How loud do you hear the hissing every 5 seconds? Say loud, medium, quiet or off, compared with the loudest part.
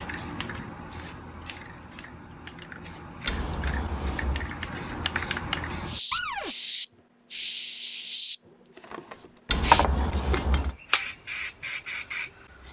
quiet, loud, medium.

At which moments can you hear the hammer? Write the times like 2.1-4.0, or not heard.
not heard.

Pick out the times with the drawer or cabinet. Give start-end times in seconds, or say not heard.
0.1-0.8, 6.1-6.5, 8.8-10.3.